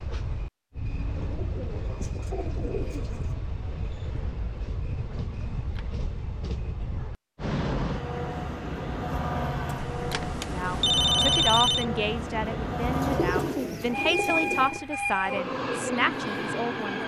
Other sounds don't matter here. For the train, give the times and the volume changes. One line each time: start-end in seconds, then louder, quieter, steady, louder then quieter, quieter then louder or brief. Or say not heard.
0.0-17.0 louder.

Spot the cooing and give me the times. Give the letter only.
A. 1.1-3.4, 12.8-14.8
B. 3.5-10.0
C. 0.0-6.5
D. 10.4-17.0
A.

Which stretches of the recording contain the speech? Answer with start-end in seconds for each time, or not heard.
10.4-17.0.